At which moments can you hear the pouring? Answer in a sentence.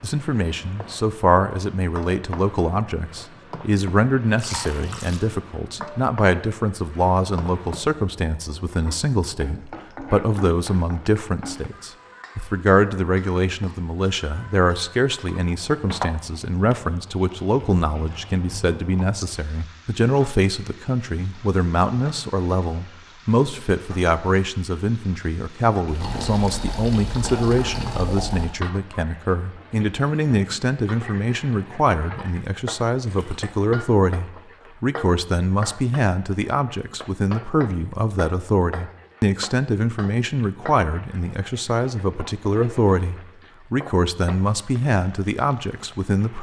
The pouring can be heard from 4.3 to 5.3 s, from 25.9 to 28.6 s and from 33.0 to 33.5 s.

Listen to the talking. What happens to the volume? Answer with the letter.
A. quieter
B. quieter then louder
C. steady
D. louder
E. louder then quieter
C.